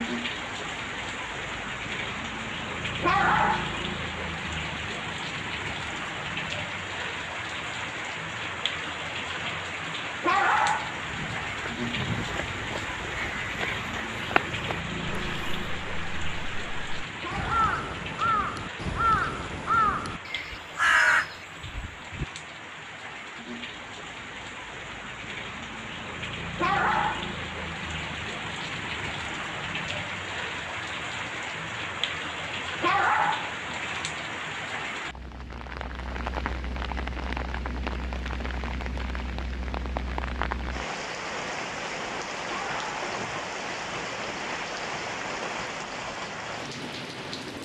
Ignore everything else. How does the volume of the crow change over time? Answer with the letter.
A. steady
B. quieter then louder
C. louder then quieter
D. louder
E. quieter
D.